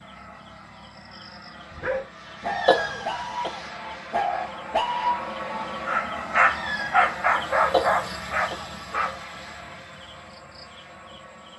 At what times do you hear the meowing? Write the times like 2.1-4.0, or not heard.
2.4-3.4, 6.5-7.0.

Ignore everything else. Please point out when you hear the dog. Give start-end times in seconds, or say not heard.
1.7-9.2.